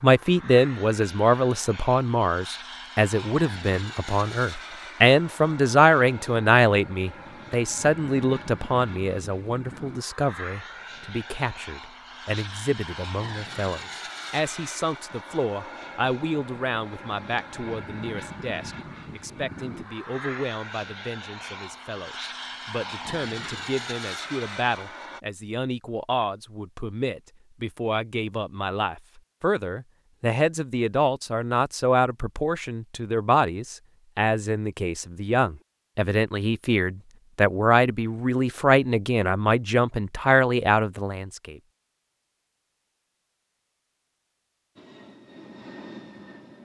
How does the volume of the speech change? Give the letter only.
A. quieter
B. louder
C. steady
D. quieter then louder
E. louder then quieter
D.